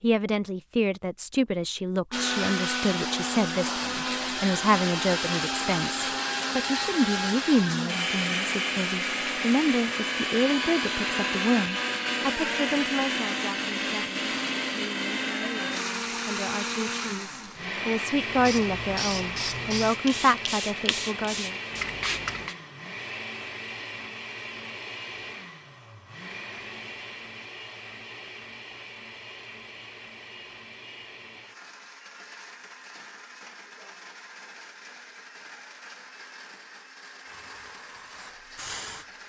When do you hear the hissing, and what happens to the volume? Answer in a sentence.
The hissing can be heard from 18.3 to 22.6 s, at a steady volume; and briefly from 37.2 to 39.0 s.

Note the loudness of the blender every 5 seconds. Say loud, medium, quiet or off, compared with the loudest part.
loud, loud, loud, loud, medium, quiet, quiet, quiet.